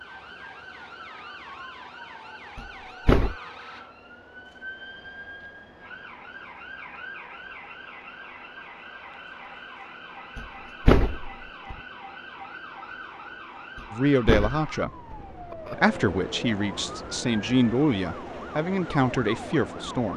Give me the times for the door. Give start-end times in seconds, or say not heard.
2.5-3.4, 10.3-11.8, 13.8-15.8.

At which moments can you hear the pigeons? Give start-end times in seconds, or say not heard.
not heard.